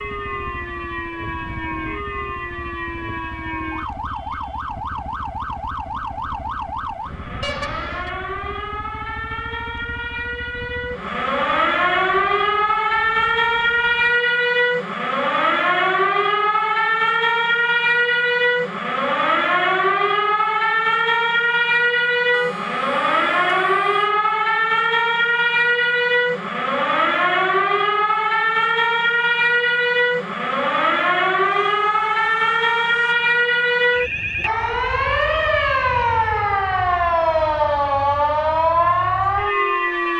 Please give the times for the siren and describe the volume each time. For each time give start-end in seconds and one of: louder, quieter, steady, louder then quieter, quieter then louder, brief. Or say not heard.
0.0-40.1 louder.